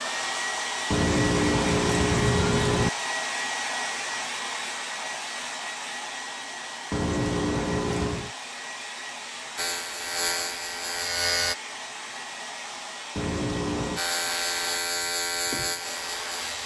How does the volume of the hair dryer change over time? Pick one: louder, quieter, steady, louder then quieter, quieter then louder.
quieter.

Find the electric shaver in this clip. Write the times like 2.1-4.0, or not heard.
9.6-11.6, 13.9-16.6.